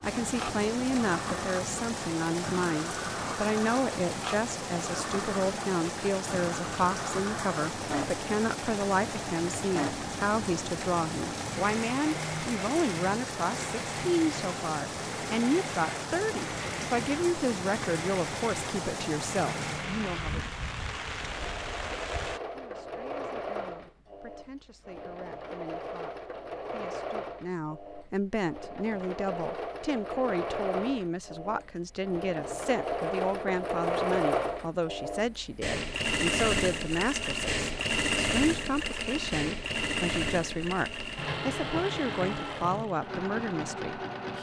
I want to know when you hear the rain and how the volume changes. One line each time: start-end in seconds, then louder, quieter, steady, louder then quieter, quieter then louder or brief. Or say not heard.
0.0-22.4 steady.